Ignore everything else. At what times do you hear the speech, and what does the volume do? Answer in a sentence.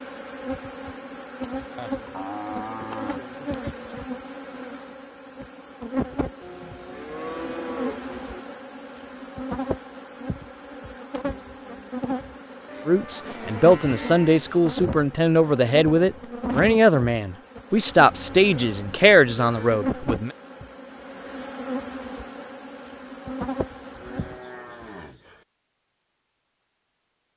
The speech can be heard from 12.8 to 20.3 s, at a steady volume.